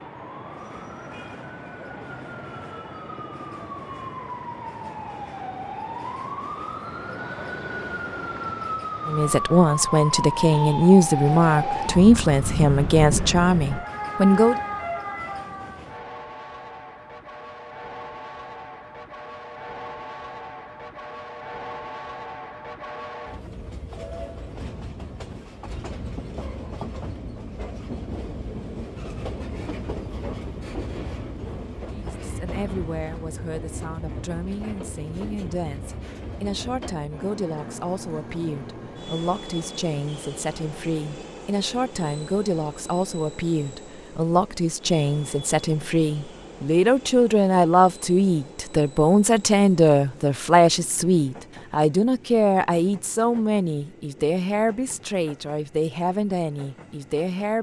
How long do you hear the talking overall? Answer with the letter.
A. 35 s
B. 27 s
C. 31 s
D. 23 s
C.